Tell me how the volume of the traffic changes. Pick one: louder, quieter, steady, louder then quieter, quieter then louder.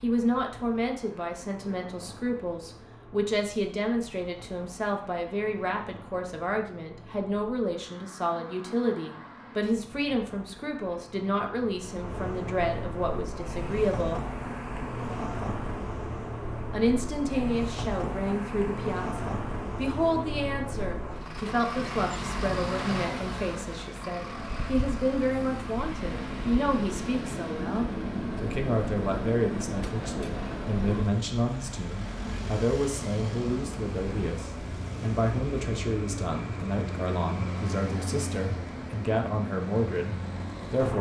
louder.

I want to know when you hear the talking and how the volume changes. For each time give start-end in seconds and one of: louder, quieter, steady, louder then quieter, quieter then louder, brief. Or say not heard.
0.0-14.2 steady
16.7-40.9 steady.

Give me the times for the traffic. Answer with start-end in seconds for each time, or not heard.
0.0-40.9.